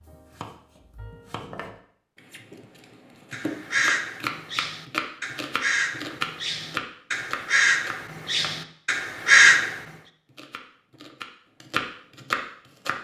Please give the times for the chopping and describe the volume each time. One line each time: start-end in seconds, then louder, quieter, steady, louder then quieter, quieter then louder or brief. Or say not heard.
0.0-8.6 louder
10.2-12.9 brief.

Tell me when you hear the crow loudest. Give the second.
9 s.